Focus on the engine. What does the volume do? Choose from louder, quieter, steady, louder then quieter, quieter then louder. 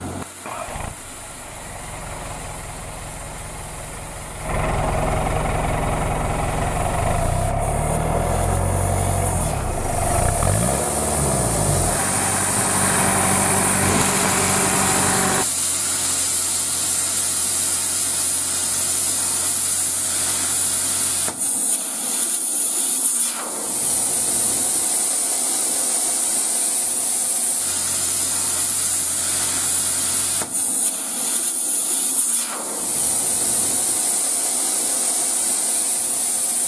louder.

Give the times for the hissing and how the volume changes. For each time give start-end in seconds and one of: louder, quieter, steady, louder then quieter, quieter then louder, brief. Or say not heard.
0.0-36.6 louder.